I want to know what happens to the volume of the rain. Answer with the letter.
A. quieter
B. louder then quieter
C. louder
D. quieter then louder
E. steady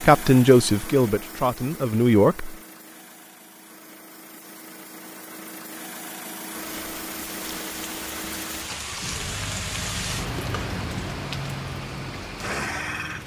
B.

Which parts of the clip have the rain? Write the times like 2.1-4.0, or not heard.
6.5-13.2.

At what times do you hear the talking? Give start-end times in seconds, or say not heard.
0.0-2.5.